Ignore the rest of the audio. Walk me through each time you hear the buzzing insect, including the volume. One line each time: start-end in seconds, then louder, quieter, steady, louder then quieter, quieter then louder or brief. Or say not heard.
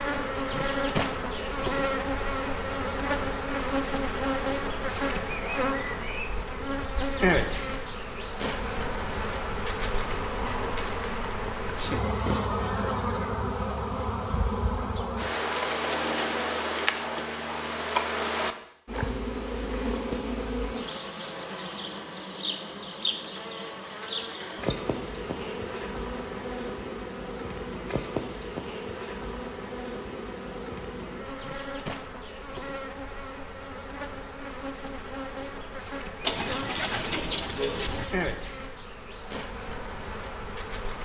0.0-41.0 quieter.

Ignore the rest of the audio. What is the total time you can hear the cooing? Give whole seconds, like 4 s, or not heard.
2 s.